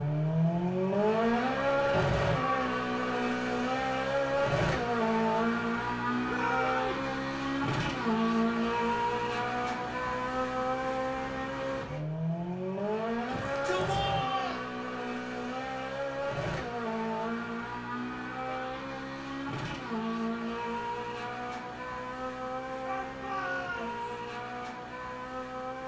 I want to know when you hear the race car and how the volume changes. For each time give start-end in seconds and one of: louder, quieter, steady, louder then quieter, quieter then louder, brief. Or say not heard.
0.0-25.8 quieter.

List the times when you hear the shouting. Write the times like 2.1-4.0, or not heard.
6.2-7.0, 13.2-14.7, 22.8-24.0.